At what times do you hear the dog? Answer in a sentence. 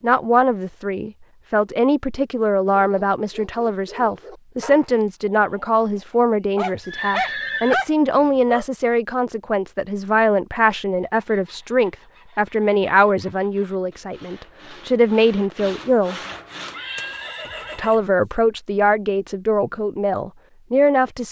The dog can be heard from 2.8 to 8.7 s.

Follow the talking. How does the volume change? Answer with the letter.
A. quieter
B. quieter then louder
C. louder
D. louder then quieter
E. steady
E.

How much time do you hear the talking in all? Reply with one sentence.
You can hear the talking for 20 seconds altogether.